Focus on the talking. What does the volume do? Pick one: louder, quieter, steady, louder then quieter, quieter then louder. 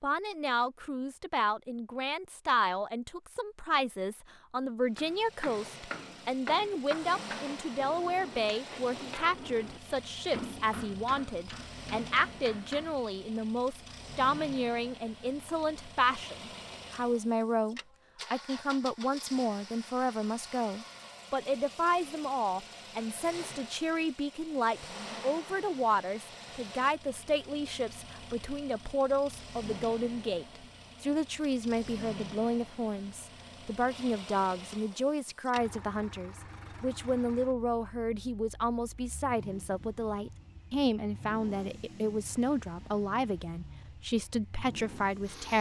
steady.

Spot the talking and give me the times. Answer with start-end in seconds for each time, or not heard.
0.0-45.5.